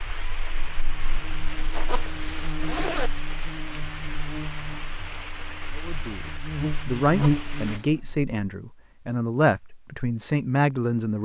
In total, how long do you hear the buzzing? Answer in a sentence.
You can hear the buzzing for 8 seconds altogether.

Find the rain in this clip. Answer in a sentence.
You can hear the rain from 0.0 to 7.8 s.